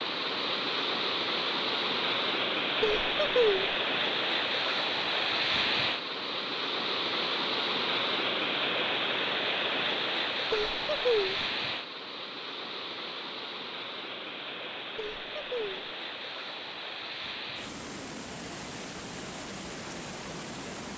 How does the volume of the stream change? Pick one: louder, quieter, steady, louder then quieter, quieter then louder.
quieter.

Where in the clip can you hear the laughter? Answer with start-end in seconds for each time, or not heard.
2.8-3.8, 10.5-11.4, 14.9-15.9.